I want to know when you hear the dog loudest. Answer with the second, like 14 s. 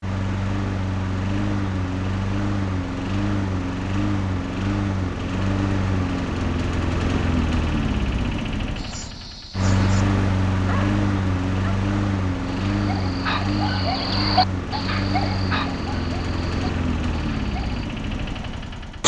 14 s.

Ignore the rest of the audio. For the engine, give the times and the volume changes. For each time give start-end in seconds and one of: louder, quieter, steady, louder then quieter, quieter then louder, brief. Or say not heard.
0.0-19.0 steady.